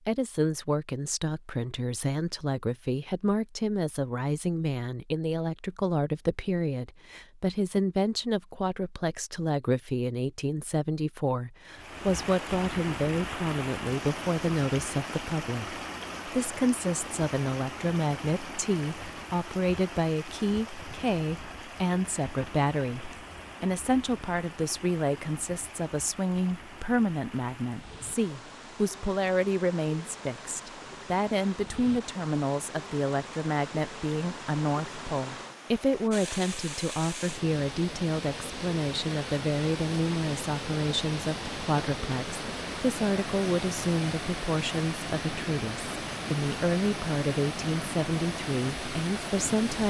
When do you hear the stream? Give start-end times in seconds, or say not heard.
11.7-49.8.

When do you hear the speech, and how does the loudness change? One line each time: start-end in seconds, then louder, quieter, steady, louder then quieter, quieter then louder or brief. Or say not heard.
0.1-49.8 steady.